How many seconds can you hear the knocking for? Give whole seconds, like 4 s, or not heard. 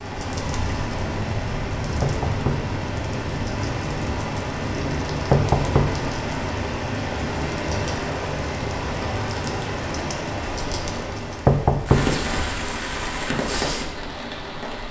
2 s.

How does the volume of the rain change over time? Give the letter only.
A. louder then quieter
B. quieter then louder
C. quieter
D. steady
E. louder
D.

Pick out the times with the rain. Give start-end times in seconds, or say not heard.
0.0-14.8.